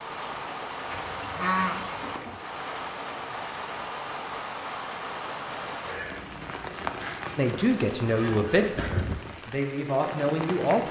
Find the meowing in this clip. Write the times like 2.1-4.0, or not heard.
not heard.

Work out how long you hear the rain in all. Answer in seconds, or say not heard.
11 s.